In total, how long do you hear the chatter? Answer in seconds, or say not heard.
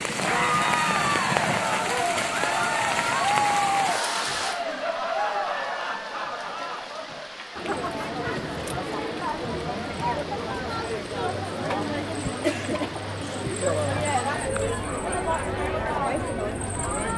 17 s.